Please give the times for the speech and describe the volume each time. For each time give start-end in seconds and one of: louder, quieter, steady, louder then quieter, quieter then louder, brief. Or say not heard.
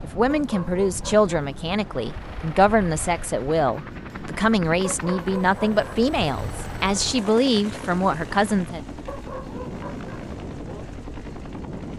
0.0-8.8 steady.